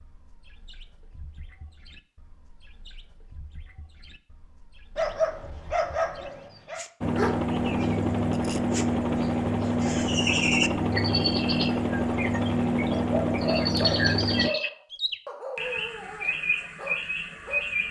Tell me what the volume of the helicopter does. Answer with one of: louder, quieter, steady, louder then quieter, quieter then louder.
steady.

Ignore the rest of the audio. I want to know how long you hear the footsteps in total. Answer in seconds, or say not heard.
not heard.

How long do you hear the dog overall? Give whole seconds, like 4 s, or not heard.
7 s.